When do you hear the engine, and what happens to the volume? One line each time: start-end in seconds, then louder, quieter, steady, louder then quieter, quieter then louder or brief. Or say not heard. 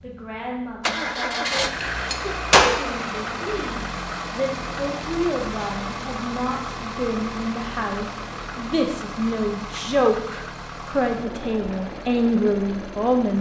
0.0-13.3 quieter.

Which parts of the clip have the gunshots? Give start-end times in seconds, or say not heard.
1.8-2.7.